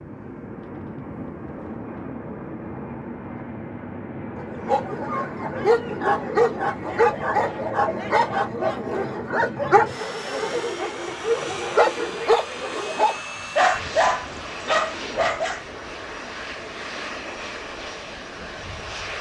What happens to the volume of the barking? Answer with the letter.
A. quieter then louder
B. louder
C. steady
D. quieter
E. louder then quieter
C.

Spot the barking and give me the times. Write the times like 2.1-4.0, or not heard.
4.3-15.6.